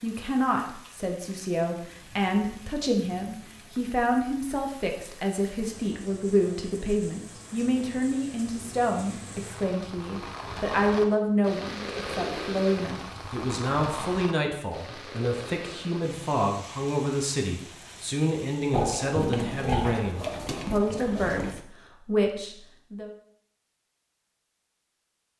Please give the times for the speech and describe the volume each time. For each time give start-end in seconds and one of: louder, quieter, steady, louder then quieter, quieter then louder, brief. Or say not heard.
0.0-23.1 steady.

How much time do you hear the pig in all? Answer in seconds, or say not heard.
3 s.